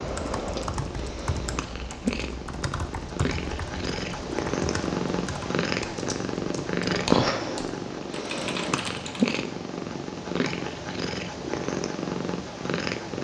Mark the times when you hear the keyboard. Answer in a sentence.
You can hear the keyboard from 0.0 to 9.3 s.